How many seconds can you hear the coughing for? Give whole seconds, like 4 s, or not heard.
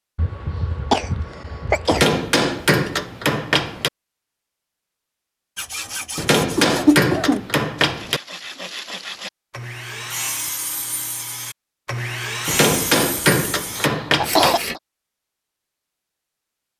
4 s.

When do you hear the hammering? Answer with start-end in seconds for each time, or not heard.
1.9-3.9, 6.2-8.2, 12.4-14.5.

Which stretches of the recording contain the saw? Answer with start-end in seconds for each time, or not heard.
5.5-14.8.